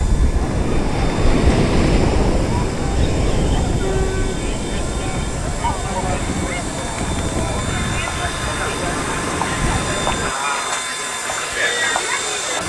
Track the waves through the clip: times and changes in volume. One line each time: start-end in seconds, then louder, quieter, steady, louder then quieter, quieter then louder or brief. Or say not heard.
0.0-10.3 quieter.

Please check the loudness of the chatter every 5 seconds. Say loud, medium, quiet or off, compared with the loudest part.
medium, loud, loud.